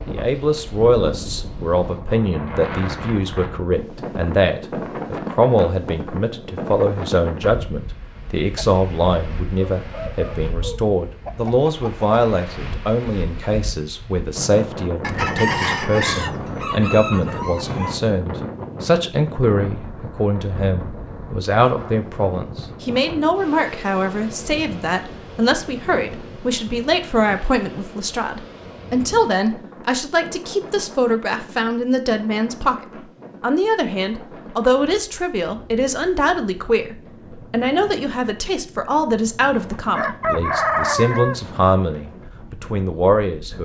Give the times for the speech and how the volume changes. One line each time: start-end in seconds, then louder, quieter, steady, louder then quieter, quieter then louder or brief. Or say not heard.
0.1-43.6 steady.